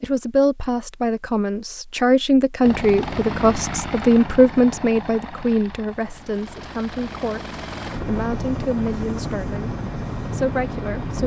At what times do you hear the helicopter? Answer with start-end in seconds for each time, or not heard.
2.6-11.2.